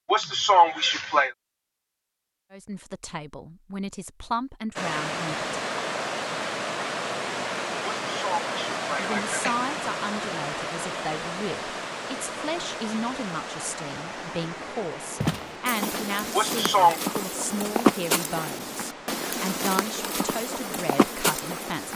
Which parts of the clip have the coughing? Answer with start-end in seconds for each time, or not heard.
0.1-1.4, 8.0-9.6, 16.4-16.9.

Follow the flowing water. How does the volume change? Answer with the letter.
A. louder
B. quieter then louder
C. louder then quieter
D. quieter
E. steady
D.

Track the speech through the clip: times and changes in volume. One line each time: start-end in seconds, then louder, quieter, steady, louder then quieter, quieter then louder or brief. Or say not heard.
2.5-5.5 brief
8.9-21.9 steady.